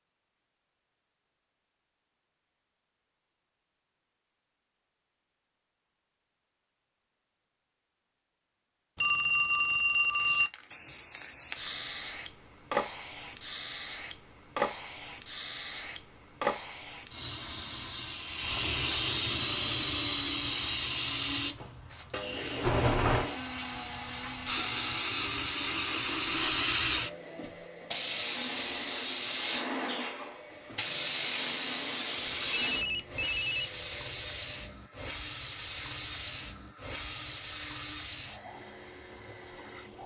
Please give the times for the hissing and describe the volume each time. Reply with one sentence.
You can hear the hissing from 10.1 to 40.0 s, getting louder.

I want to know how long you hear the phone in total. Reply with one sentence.
You can hear the phone for 4 seconds altogether.